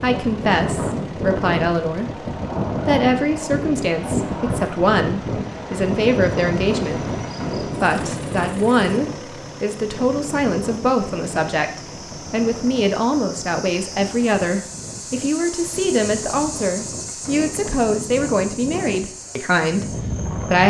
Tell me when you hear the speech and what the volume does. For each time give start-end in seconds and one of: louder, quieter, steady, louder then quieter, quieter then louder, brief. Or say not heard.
0.0-20.6 steady.